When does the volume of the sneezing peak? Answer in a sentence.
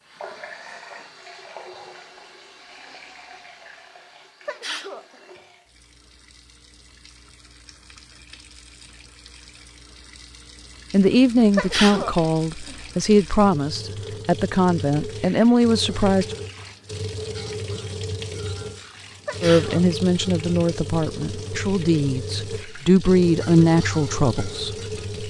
The loudest moment of the sneezing is at 12 seconds.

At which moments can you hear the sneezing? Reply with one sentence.
You can hear the sneezing from 4.5 to 5.2 s, from 11.6 to 12.8 s and from 19.2 to 19.9 s.